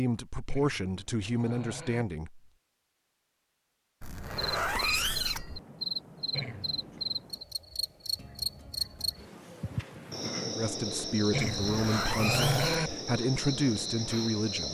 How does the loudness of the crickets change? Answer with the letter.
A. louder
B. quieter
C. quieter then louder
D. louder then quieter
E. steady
E.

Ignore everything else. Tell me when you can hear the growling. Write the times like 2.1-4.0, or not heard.
0.5-2.0, 6.3-7.2, 11.3-12.9.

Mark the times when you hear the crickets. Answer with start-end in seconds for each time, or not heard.
4.3-14.6.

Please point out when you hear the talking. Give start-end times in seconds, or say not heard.
0.0-2.4, 10.6-14.6.